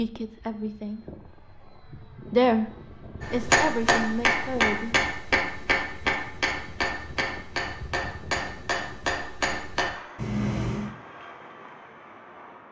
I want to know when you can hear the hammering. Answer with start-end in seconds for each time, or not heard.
3.2-10.9.